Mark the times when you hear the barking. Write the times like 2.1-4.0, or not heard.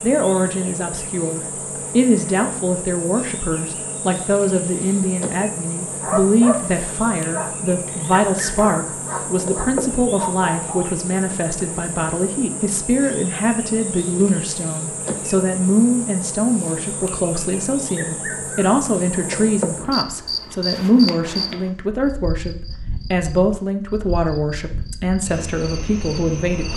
5.8-10.9.